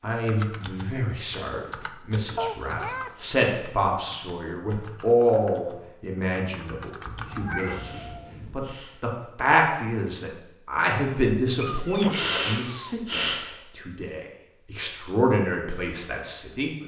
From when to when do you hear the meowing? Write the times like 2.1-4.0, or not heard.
2.4-3.2, 7.0-8.7, 11.6-12.9.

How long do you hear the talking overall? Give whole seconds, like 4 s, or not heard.
17 s.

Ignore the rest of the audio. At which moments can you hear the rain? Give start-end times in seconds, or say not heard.
not heard.